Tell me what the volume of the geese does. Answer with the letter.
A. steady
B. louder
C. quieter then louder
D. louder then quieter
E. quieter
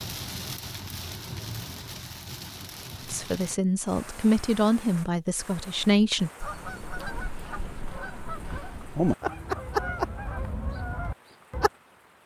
D.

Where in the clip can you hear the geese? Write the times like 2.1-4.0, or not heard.
6.4-11.7.